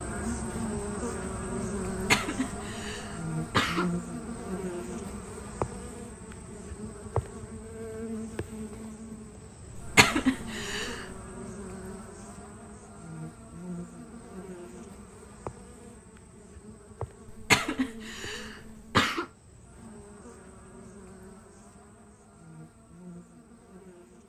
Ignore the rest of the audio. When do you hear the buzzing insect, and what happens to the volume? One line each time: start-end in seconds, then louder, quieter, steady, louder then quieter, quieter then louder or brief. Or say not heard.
0.0-24.2 quieter.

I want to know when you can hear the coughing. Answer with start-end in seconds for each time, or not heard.
1.9-3.9, 9.8-11.1, 17.3-19.2.